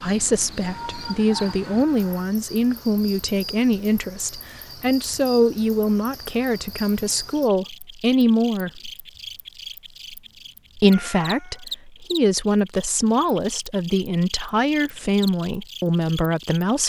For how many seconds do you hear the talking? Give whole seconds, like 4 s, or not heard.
15 s.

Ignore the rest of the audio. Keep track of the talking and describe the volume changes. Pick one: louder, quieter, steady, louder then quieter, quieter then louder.
steady.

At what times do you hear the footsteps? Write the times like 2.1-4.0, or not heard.
not heard.